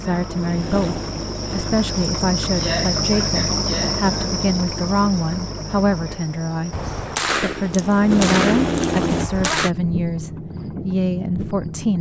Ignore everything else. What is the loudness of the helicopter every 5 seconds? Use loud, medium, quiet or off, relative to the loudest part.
medium, loud, off.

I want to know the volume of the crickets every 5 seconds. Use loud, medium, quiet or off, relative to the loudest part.
loud, medium, medium.